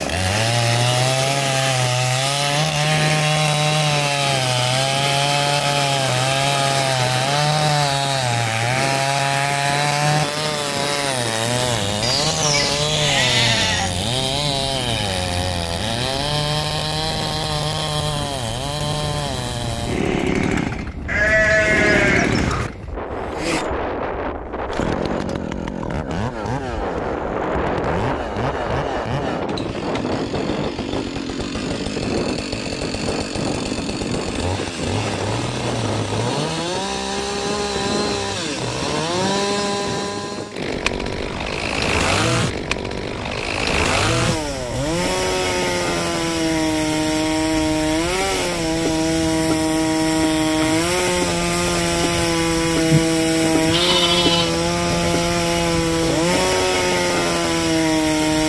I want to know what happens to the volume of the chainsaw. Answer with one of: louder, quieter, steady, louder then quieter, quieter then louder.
quieter then louder.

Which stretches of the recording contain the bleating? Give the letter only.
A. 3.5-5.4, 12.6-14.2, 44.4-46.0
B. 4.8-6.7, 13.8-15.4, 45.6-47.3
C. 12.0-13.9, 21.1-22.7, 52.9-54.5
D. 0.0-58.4
C.